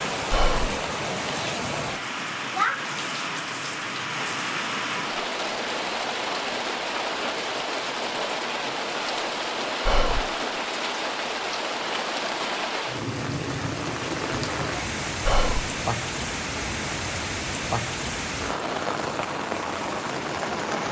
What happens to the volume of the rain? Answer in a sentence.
The loudness of the rain stays about the same.